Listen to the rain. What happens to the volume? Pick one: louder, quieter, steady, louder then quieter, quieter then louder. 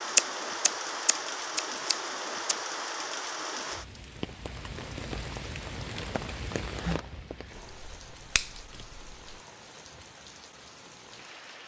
quieter.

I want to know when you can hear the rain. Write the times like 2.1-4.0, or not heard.
0.0-11.6.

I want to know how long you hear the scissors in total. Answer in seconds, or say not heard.
4 s.